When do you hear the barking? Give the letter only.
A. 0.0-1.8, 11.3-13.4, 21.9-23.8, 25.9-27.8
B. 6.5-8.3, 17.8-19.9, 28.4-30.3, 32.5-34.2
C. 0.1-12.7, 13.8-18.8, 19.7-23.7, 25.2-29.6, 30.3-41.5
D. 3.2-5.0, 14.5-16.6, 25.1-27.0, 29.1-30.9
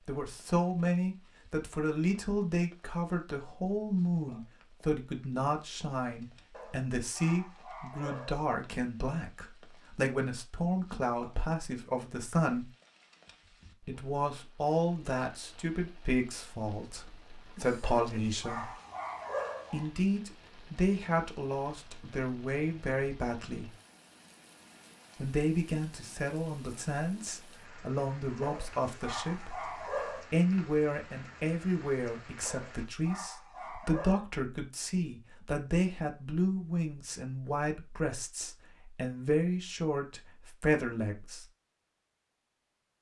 B.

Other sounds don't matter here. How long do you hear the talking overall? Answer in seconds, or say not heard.
37 s.